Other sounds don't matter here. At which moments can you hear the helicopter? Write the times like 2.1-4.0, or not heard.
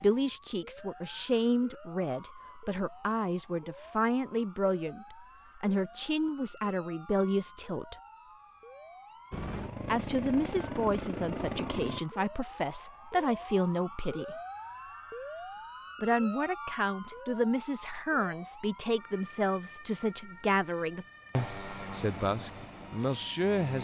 9.3-12.0, 21.3-23.7.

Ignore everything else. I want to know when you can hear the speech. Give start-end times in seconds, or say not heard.
0.0-8.0, 9.8-14.3, 16.0-23.7.